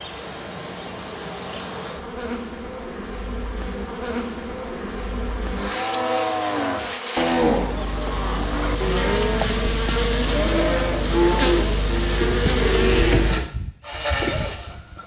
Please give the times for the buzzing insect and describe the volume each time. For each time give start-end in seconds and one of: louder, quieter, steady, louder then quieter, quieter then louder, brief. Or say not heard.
0.0-15.0 louder.